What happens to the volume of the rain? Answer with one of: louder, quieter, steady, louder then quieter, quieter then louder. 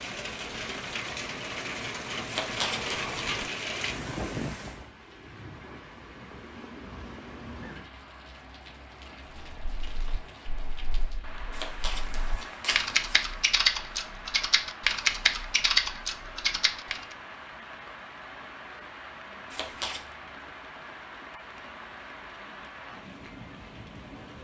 quieter.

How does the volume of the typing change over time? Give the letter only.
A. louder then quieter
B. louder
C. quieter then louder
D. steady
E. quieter
B.